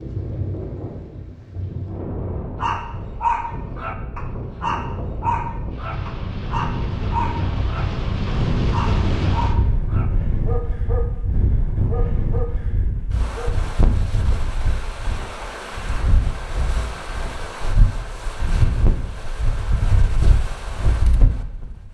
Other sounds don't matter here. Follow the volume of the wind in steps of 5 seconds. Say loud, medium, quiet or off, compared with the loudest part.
medium, loud, loud, loud, loud.